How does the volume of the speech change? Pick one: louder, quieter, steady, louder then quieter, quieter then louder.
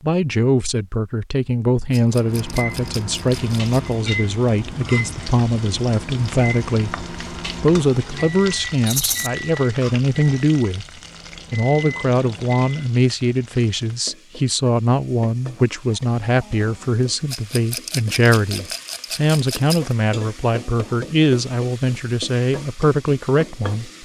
steady.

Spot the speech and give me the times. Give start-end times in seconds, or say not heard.
0.0-10.8, 11.5-24.0.